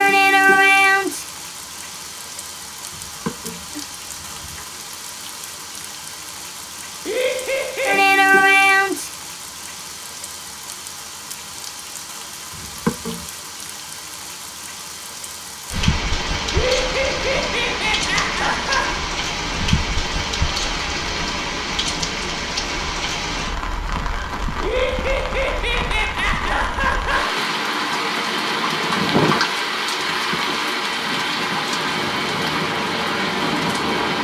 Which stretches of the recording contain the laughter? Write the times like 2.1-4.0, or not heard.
7.0-8.1, 16.5-19.0, 24.6-27.4.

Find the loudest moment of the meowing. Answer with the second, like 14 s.
13 s.